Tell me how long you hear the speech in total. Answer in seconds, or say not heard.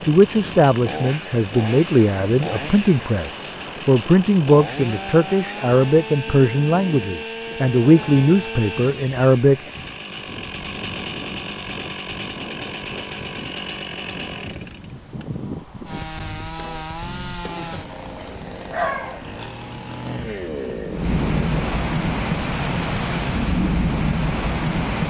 10 s.